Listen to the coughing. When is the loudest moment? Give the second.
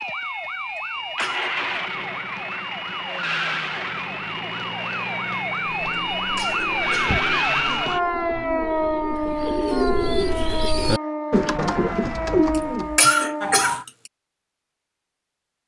13 s.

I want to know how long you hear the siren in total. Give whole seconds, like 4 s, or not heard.
14 s.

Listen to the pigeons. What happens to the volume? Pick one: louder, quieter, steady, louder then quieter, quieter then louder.
louder.